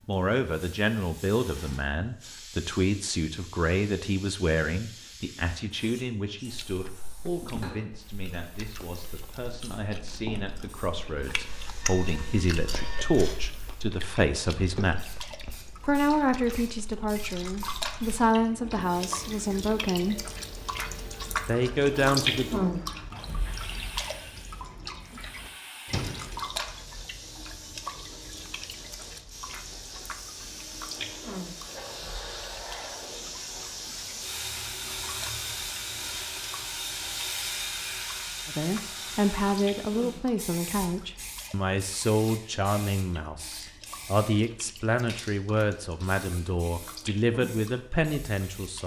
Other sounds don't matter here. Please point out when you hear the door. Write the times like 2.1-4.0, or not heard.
25.4-26.4.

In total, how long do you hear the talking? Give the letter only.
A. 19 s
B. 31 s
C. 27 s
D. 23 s
B.